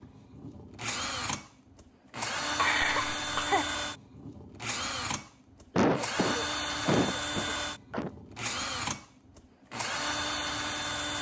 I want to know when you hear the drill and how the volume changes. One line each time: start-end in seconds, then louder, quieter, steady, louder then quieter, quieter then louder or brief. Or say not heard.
0.0-11.1 steady.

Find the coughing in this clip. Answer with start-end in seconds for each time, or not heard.
2.5-3.6, 5.8-8.1.